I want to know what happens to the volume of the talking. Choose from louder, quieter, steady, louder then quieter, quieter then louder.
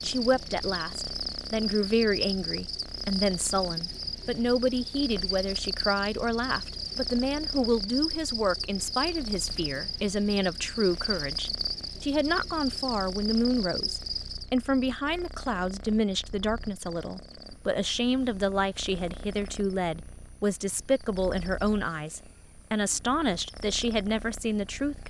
steady.